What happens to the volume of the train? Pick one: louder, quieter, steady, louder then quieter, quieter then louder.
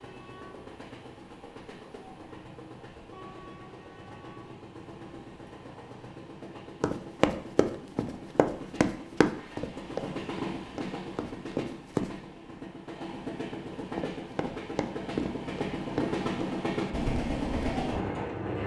louder.